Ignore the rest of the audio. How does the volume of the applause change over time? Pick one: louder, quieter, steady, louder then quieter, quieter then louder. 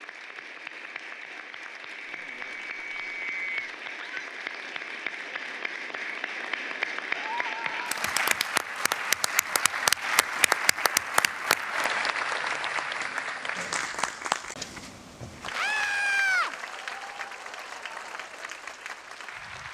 louder then quieter.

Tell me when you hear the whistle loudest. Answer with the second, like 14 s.
3 s.